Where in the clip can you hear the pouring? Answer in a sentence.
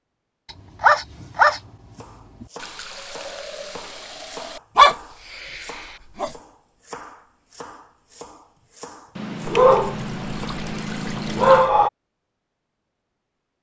The pouring can be heard from 2.5 to 4.6 s and from 9.2 to 11.7 s.